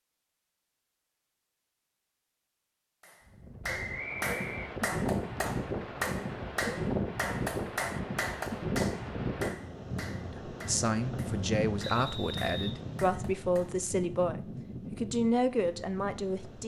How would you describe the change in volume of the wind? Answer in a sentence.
The loudness of the wind goes down.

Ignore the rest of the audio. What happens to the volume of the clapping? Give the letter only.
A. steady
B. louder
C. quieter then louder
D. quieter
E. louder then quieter
D.